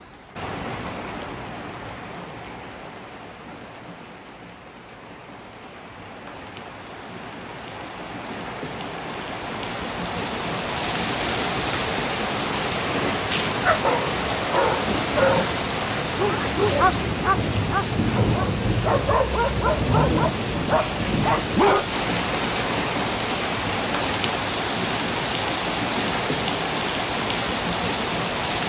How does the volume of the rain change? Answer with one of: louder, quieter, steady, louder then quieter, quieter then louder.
louder.